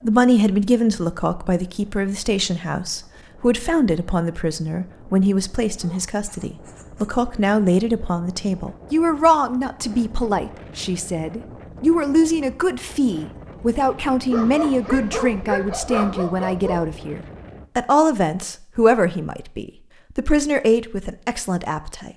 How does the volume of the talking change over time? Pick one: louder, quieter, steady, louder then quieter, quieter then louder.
steady.